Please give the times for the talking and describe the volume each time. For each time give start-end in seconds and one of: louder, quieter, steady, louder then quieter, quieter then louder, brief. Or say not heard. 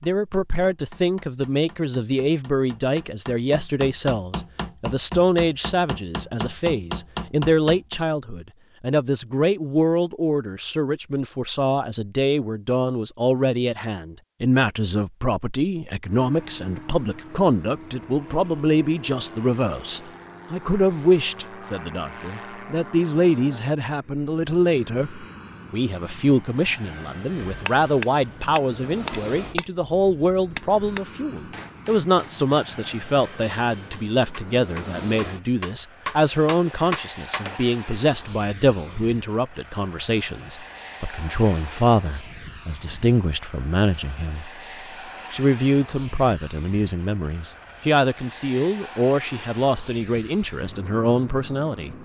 0.0-44.5 steady
45.3-52.0 steady.